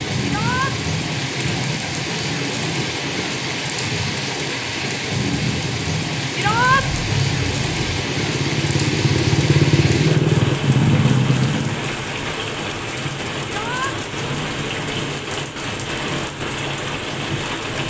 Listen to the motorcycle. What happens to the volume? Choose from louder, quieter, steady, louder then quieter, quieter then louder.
louder.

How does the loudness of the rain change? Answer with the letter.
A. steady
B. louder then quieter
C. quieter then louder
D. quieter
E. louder
A.